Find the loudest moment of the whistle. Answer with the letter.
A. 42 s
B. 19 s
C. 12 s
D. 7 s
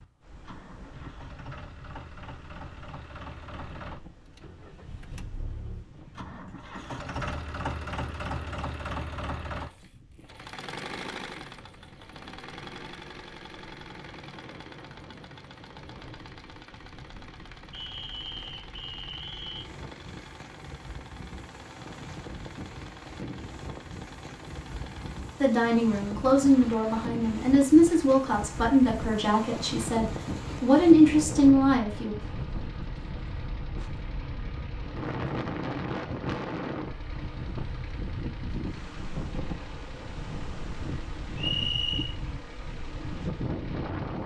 A.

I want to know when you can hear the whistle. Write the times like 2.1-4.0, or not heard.
17.7-19.6, 41.4-42.1.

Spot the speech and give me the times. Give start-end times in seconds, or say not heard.
25.4-32.1.